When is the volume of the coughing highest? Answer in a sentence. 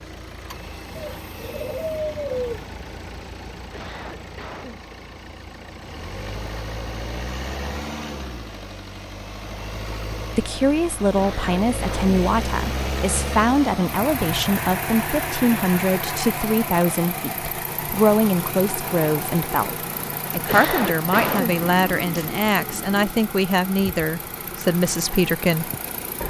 The volume of the coughing peaks at 21 seconds.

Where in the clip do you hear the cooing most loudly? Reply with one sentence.
The loudest moment of the cooing is at 2 seconds.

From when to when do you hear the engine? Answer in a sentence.
You can hear the engine from 0.0 to 26.2 s.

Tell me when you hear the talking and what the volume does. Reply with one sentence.
You can hear the talking from 10.3 to 25.7 s, at a steady volume.